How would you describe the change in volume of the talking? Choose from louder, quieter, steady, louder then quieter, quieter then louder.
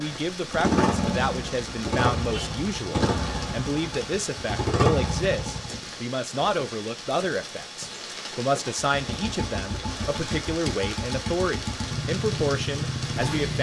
steady.